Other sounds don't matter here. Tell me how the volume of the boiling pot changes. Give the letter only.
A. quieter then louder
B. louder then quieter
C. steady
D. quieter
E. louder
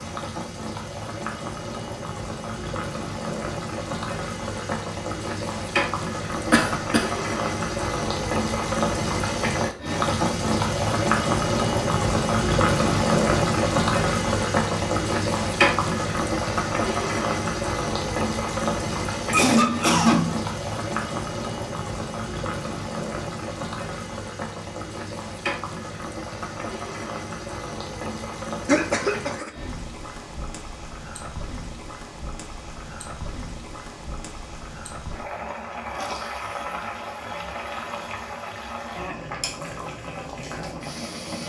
B.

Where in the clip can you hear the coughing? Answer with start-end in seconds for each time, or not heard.
6.5-7.0, 19.3-20.4, 28.6-29.5.